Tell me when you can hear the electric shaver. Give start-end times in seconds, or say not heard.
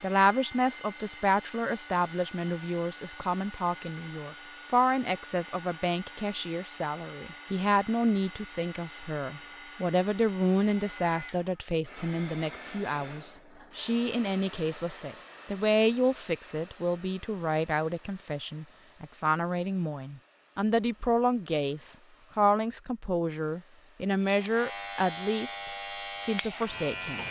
24.2-27.2.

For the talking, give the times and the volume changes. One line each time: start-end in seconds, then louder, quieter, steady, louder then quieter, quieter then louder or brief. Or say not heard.
0.0-27.2 steady.